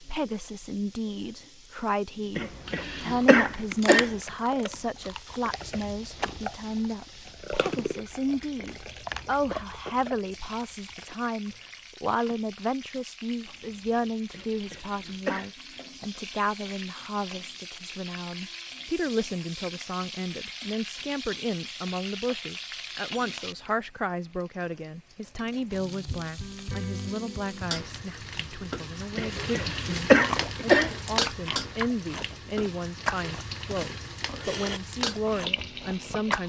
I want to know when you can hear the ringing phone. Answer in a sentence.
You can't hear the ringing phone here.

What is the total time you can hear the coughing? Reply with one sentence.
You can hear the coughing for 5 seconds altogether.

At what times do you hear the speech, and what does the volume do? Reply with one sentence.
The speech can be heard from 0.0 to 36.4 s, at a steady volume.